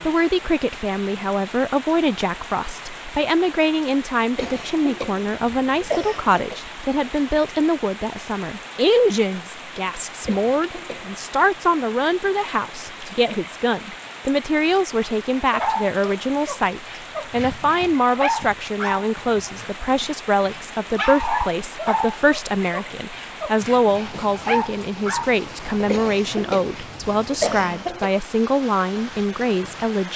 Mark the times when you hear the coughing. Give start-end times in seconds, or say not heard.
4.3-6.6, 10.2-11.1, 25.9-28.2.